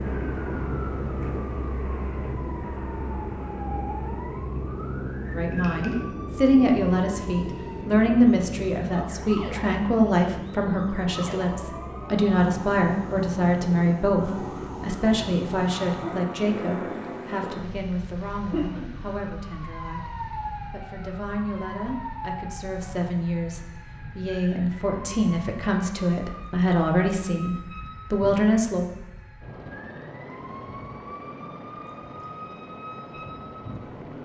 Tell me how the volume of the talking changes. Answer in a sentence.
The loudness of the talking goes down, then up.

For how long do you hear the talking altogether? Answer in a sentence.
The talking can be heard for 23 seconds in total.